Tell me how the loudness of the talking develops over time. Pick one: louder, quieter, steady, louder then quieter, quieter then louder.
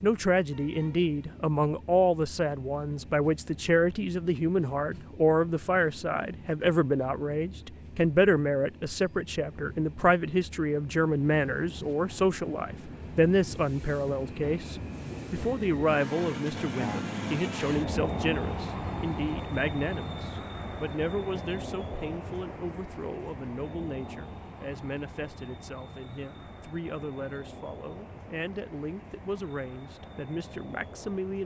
quieter.